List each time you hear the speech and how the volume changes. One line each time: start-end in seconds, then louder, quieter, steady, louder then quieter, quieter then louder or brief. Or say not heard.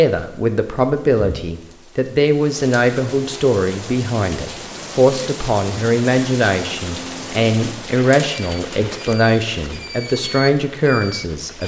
0.0-11.6 steady.